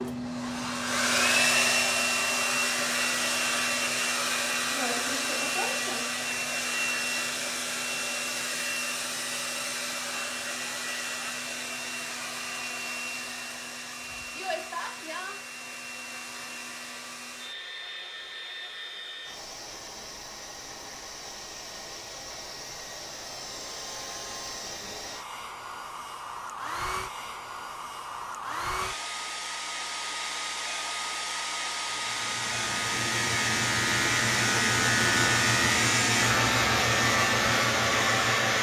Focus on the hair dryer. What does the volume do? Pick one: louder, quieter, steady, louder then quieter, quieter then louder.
quieter then louder.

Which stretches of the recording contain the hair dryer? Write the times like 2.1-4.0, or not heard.
0.0-38.5.